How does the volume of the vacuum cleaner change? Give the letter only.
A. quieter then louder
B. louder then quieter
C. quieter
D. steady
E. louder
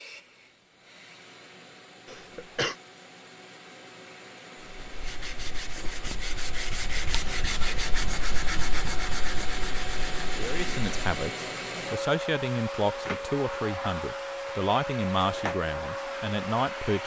E.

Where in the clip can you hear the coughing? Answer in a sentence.
The coughing can be heard from 2.0 to 2.8 s.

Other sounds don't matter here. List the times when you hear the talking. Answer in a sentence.
The talking can be heard from 10.3 to 17.0 s.